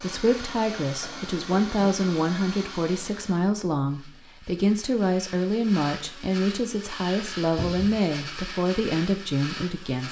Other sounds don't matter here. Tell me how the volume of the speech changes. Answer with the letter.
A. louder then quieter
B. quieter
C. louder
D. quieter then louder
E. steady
E.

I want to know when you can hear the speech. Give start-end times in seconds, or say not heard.
0.0-10.0.